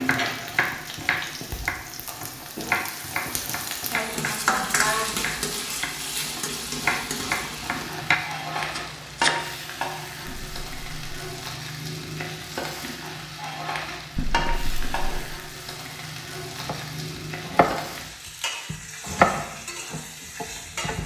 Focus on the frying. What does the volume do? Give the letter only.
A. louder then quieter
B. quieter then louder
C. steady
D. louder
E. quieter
A.